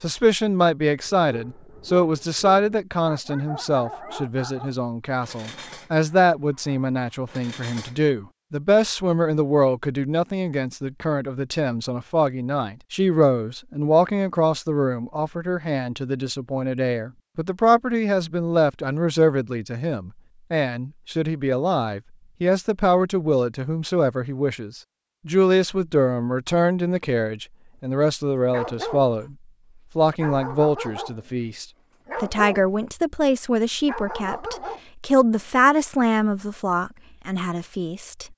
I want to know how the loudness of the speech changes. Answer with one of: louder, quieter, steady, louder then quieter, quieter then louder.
steady.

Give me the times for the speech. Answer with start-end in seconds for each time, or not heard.
0.0-29.4, 29.9-38.2.